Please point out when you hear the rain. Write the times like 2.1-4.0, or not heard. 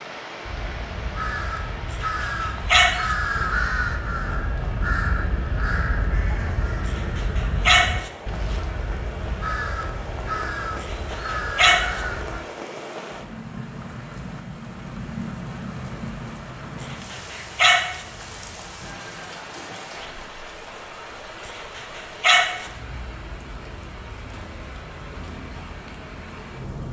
0.0-26.8.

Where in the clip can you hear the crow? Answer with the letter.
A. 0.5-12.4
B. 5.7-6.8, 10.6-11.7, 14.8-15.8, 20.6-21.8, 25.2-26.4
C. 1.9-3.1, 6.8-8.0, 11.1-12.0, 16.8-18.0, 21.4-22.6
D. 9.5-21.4
A.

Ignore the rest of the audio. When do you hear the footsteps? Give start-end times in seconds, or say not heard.
not heard.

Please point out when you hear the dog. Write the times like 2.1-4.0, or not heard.
1.9-3.1, 6.8-8.0, 11.1-12.0, 16.8-18.0, 21.4-22.6.